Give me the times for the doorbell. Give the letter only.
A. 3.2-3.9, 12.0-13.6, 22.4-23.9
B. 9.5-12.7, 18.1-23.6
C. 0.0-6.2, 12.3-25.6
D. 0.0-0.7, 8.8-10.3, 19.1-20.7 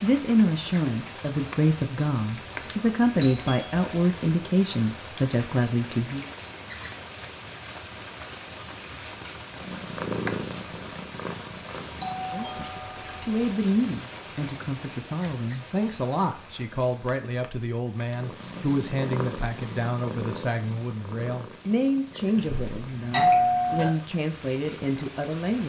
A.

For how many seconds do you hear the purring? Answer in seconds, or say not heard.
9 s.